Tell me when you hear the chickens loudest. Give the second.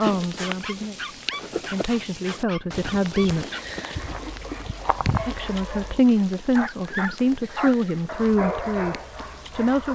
5 s.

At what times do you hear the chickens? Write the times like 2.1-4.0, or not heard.
2.7-5.5.